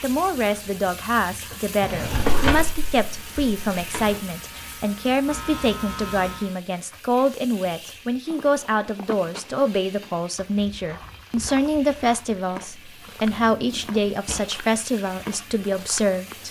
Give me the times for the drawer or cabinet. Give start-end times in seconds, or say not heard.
1.8-4.2, 13.2-14.4.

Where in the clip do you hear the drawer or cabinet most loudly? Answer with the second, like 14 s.
2 s.